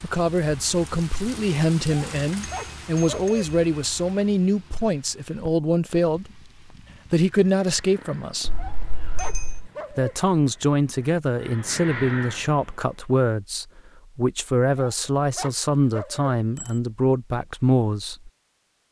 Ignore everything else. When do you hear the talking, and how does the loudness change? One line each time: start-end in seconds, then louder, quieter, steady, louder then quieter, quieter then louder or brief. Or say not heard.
0.0-6.5 steady
7.1-8.5 brief
9.9-18.3 steady.